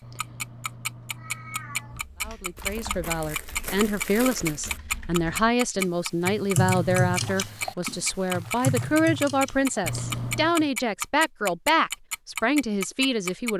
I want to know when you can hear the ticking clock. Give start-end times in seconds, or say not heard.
0.1-13.5.